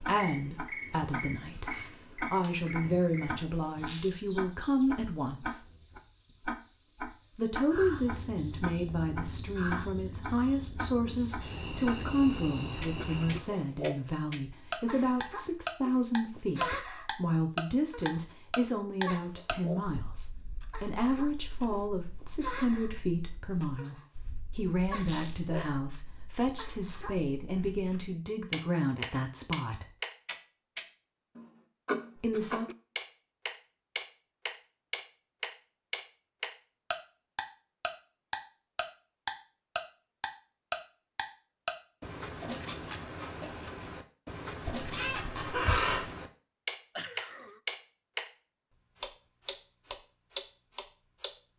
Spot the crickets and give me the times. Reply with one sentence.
You can hear the crickets from 0.0 to 27.8 s.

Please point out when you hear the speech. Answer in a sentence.
The speech can be heard from 0.0 to 5.7 s, from 7.3 to 29.9 s and from 32.1 to 32.6 s.